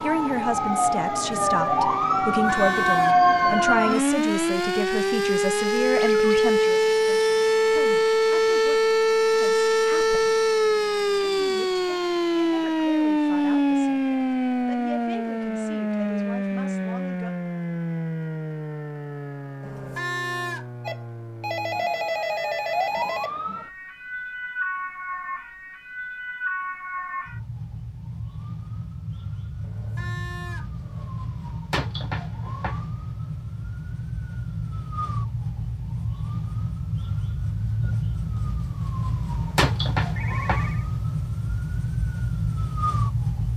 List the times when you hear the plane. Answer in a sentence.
You can't hear the plane here.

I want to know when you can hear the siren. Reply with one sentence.
You can hear the siren from 0.0 to 43.5 s.